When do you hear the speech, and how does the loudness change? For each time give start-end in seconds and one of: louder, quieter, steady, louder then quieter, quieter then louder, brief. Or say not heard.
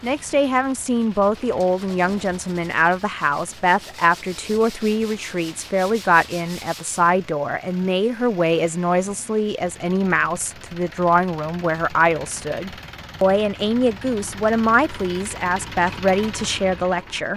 0.0-17.3 steady.